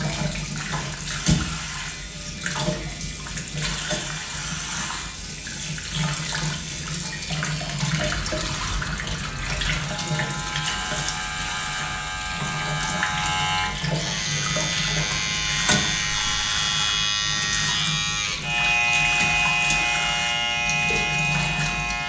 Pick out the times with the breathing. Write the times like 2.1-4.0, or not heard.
not heard.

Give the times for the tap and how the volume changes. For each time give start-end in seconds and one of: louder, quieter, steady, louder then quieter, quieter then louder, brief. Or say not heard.
0.0-22.0 steady.